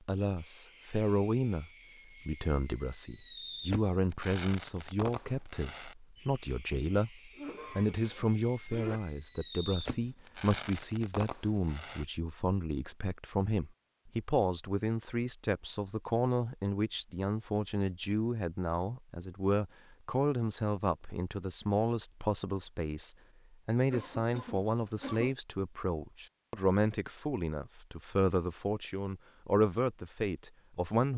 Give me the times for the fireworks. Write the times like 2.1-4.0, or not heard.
0.3-12.1.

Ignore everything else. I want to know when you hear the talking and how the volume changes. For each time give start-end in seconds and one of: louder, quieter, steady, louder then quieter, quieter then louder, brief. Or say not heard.
0.1-31.1 steady.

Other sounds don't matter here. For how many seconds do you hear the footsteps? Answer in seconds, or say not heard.
not heard.